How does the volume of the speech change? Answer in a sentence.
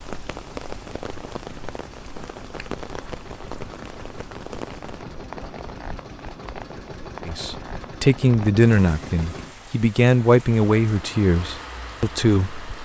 The loudness of the speech goes down.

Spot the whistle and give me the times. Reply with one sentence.
The whistle can't be heard in this clip.